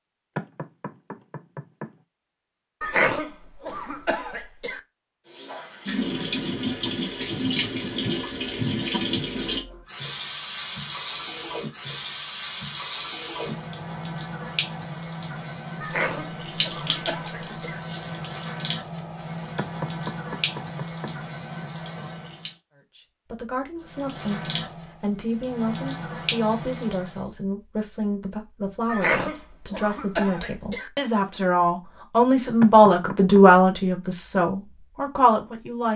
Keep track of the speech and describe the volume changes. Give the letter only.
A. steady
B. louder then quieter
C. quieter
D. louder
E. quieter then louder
D.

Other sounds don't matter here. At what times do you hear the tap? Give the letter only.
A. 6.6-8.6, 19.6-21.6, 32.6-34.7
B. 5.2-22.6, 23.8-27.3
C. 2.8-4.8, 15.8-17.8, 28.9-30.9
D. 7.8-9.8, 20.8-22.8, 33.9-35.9
B.